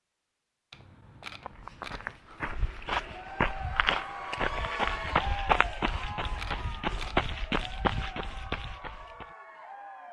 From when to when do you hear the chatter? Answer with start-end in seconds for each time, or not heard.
3.0-10.0.